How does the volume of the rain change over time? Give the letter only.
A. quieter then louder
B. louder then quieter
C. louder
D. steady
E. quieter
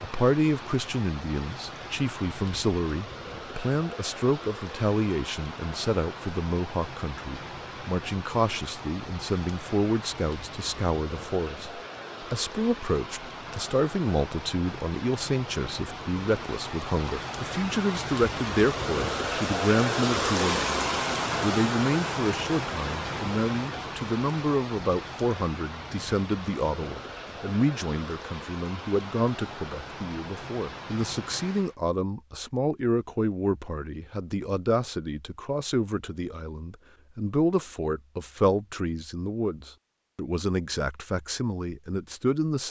B.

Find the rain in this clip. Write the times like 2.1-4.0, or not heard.
0.0-31.8.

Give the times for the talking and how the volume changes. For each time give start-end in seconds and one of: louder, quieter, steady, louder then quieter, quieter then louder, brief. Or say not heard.
0.0-42.6 steady.